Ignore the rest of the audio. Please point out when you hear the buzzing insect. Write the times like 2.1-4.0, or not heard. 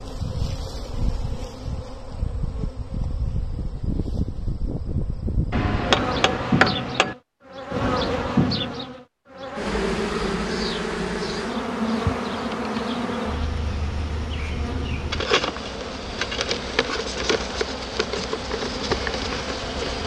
0.0-20.0.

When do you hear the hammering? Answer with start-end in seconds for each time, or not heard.
5.5-7.2.